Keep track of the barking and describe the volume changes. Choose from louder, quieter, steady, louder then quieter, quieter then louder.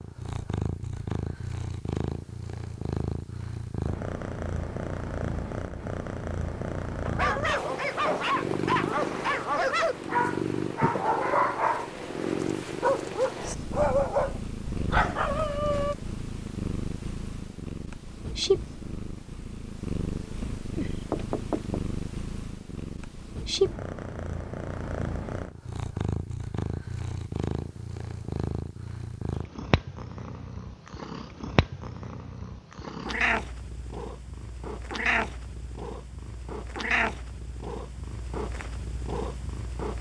steady.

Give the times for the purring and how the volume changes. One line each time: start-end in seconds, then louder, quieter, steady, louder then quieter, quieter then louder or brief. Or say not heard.
0.0-39.9 steady.